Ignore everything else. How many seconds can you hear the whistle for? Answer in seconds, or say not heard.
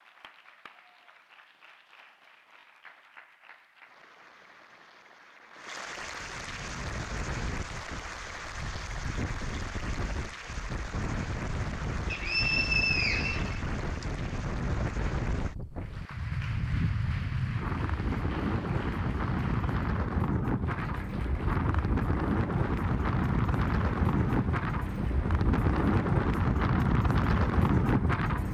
2 s.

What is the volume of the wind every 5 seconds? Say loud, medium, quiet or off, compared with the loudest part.
off, quiet, medium, medium, loud, loud.